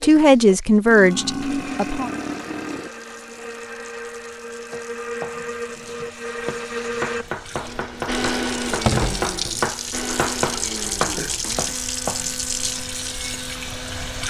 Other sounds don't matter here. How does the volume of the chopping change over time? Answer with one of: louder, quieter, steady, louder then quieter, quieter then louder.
louder.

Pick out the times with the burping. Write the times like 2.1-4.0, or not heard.
0.8-2.9, 11.0-11.9.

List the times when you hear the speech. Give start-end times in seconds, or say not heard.
0.0-2.1.